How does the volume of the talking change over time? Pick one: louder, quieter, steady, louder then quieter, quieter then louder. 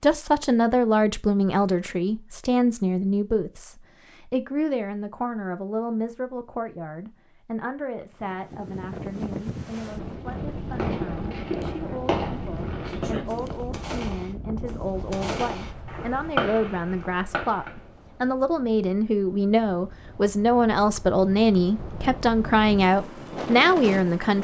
quieter then louder.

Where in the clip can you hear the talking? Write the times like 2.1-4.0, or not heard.
0.0-24.4.